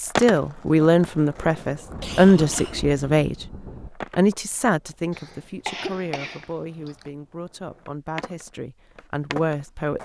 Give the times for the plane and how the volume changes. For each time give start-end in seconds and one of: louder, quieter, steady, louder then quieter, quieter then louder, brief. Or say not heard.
not heard.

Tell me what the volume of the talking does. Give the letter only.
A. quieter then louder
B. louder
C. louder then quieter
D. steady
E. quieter
A.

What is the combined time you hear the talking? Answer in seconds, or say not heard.
9 s.